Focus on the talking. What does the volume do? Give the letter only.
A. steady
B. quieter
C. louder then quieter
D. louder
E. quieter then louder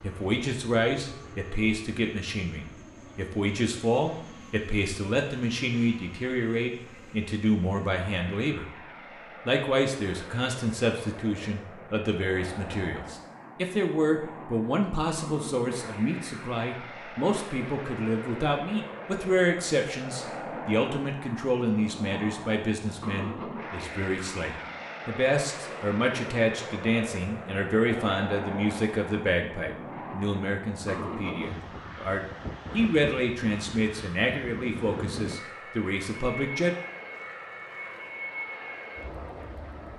A.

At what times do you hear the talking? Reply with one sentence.
The talking can be heard from 0.0 to 8.7 s and from 9.4 to 36.7 s.